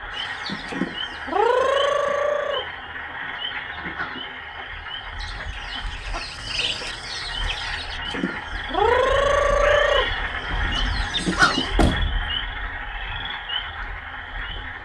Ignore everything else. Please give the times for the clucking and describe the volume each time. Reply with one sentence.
You can hear the clucking from 0.1 to 11.8 s, getting quieter then louder.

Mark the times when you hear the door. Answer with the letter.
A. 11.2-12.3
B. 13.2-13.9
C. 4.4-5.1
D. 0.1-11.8
A.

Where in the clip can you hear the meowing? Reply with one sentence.
The meowing can be heard from 9.6 to 10.3 s.